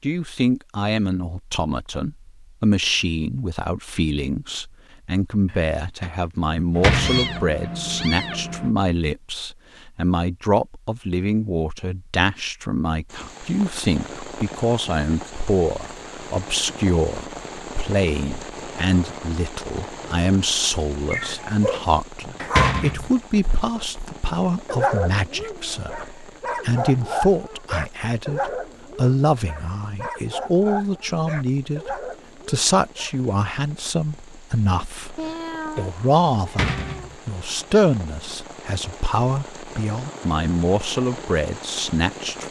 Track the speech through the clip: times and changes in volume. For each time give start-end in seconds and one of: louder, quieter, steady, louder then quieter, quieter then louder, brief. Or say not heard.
0.0-42.4 steady.